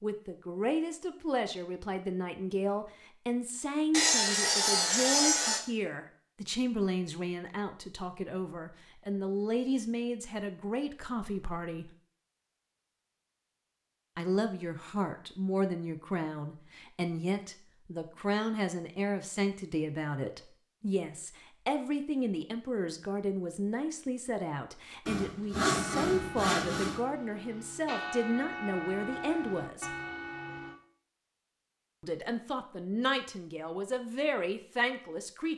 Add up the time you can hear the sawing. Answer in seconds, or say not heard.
4 s.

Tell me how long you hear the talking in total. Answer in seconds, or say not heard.
31 s.